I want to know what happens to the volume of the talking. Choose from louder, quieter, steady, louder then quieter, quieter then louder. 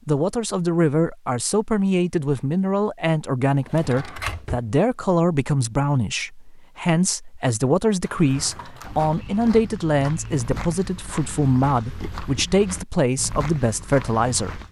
steady.